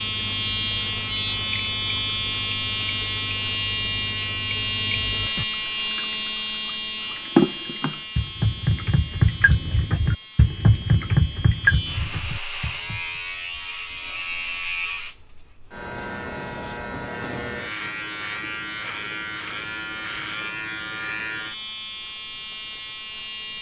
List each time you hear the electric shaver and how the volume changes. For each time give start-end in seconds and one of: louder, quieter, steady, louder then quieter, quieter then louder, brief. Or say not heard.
0.0-23.5 quieter.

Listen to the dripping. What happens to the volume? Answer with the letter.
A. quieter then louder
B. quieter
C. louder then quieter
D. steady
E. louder
E.